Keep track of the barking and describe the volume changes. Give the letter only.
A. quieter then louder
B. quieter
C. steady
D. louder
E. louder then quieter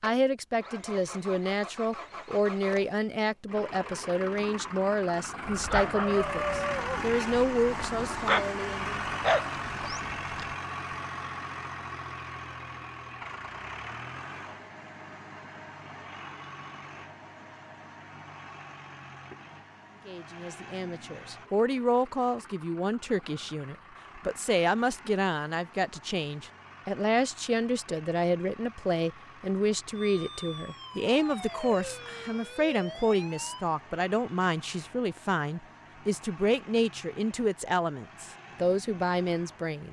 A.